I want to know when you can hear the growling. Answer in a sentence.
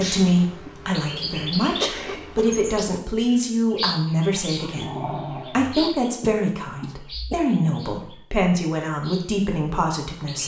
The growling can be heard from 4.4 to 5.8 s.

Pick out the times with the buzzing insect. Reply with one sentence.
You can't hear the buzzing insect here.